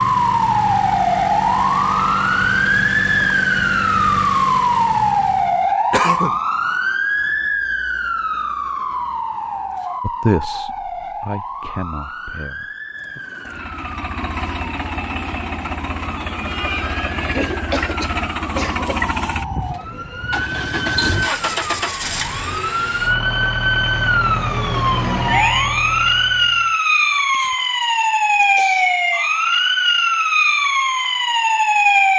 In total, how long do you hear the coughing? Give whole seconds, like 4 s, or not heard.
4 s.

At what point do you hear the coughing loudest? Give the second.
6 s.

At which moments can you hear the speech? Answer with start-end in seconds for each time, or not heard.
10.0-13.2.